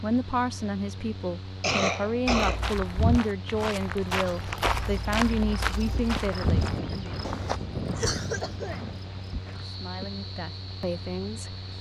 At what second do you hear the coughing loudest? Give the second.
2 s.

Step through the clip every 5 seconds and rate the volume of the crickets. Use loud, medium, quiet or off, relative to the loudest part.
off, loud, medium.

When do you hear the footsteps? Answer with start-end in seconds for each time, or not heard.
2.4-7.6.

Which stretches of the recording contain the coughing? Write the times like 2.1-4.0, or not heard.
1.6-2.6, 8.0-8.8.